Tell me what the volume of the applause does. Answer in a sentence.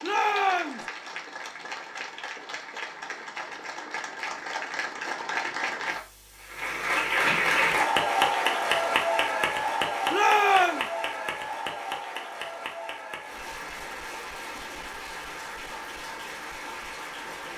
The loudness of the applause goes up, then down.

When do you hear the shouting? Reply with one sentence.
You can hear the shouting from 0.0 to 0.8 s and from 10.1 to 10.8 s.